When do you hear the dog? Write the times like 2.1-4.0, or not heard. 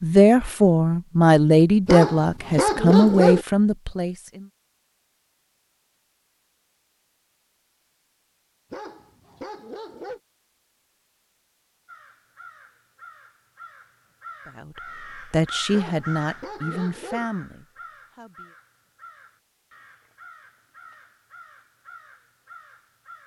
1.9-3.5, 8.7-10.2, 15.7-17.3.